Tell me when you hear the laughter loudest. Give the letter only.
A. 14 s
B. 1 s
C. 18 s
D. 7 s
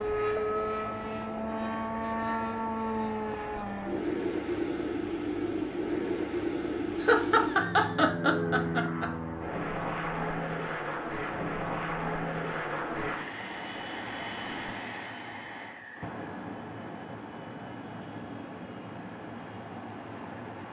D.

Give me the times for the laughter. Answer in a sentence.
The laughter can be heard from 7.0 to 9.1 s.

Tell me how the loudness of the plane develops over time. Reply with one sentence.
The loudness of the plane goes down.